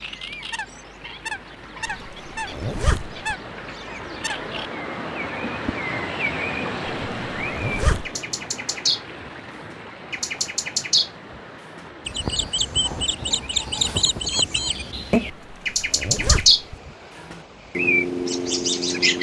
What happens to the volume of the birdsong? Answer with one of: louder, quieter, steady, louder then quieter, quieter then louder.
louder.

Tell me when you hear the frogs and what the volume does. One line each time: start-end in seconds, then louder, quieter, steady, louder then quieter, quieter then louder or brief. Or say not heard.
not heard.